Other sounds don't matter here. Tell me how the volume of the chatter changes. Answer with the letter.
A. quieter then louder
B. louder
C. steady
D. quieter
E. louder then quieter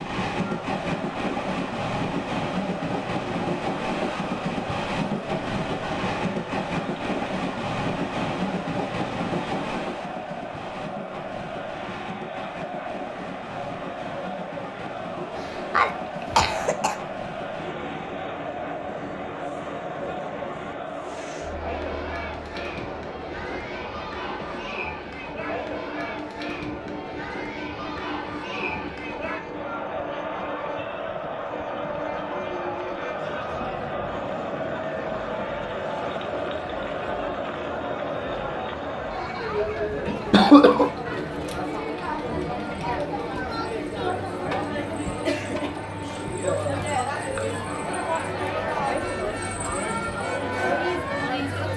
B.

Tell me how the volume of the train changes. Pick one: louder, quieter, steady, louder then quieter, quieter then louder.
quieter.